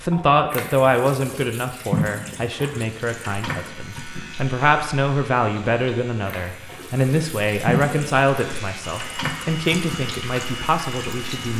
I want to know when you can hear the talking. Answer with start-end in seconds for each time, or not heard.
0.0-11.5.